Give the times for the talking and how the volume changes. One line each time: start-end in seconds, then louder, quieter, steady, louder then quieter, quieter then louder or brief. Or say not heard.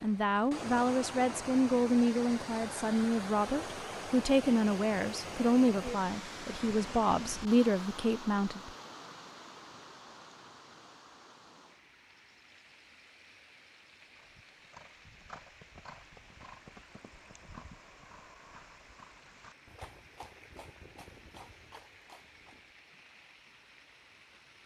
0.0-8.7 steady.